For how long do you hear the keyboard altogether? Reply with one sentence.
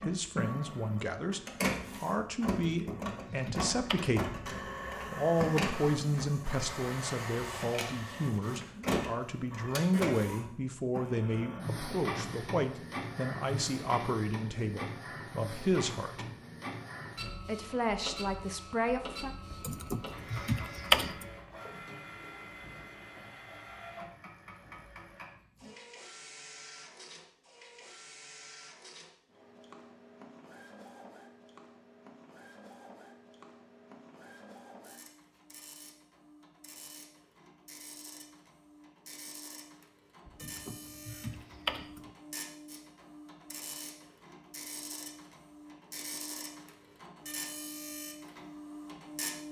The keyboard can be heard for 5 seconds in total.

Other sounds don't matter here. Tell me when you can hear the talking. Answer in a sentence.
The talking can be heard from 0.0 to 16.2 s and from 17.4 to 19.3 s.